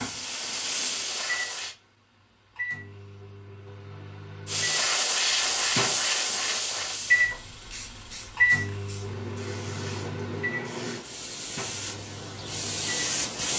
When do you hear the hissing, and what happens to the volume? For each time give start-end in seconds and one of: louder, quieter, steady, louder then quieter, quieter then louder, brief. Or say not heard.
0.0-1.8 brief
4.5-13.5 quieter then louder.